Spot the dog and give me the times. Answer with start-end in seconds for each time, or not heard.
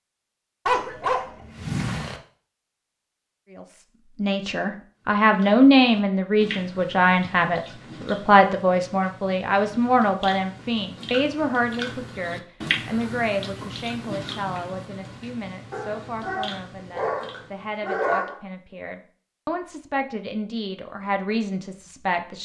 0.7-2.2, 15.7-18.4.